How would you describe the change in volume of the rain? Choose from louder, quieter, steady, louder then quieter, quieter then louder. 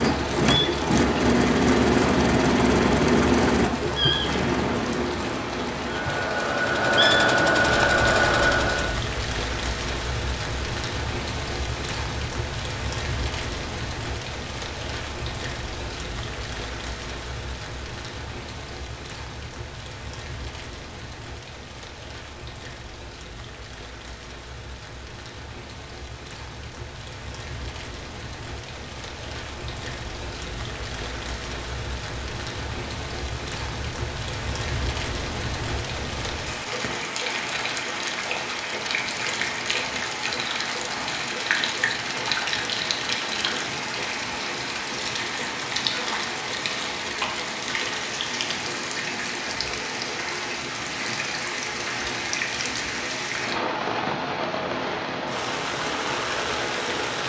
quieter then louder.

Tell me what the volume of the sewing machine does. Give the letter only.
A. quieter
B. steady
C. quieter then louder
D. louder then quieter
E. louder
C.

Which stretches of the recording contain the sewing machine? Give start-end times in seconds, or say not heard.
0.0-9.0.